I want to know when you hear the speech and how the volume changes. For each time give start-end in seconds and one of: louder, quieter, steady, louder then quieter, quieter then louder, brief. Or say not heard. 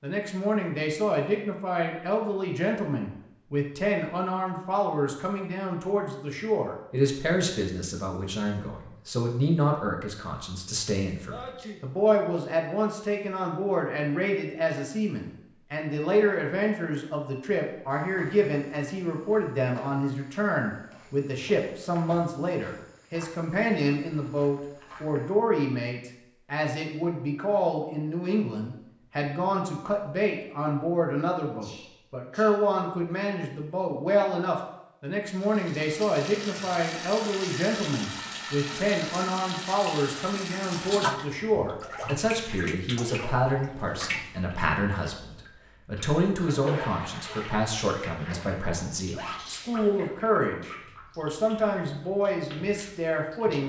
0.0-53.6 steady.